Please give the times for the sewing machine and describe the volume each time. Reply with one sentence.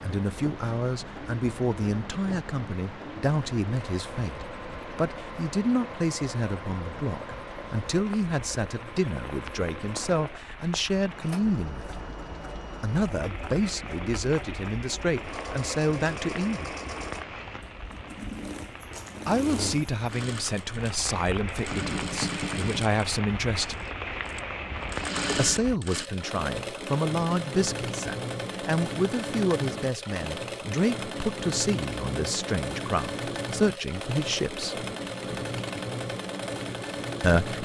You can hear the sewing machine from 0.0 to 37.5 s, getting louder.